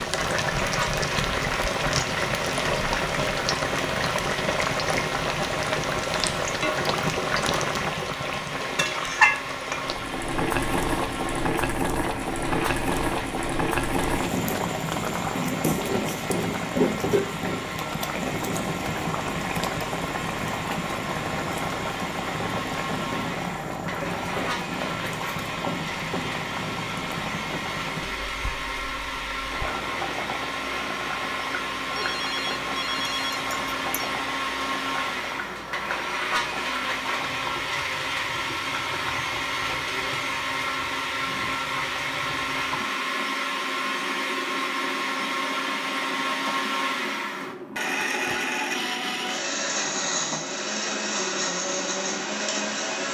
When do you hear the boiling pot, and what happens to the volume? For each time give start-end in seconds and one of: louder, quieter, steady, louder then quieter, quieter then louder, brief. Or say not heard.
0.0-53.0 quieter.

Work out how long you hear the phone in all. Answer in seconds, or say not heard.
2 s.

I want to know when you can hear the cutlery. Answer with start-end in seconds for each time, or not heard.
not heard.